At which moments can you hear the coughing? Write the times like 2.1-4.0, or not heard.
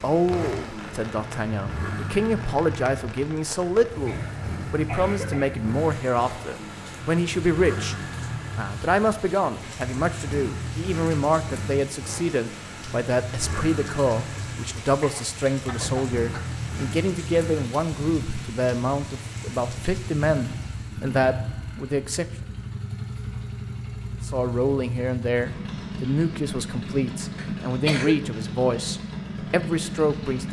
4.0-5.6, 14.3-16.4, 27.4-28.2.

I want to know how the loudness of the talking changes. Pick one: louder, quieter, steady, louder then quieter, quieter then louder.
steady.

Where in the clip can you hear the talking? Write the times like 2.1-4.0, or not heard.
0.0-8.0, 8.6-22.2, 24.2-30.4.